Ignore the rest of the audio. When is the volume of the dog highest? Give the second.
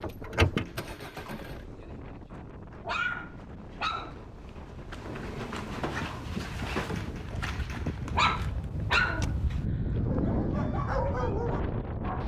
9 s.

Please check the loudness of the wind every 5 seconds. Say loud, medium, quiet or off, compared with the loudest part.
quiet, medium, loud.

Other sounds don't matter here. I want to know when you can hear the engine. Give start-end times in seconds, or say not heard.
0.0-1.6.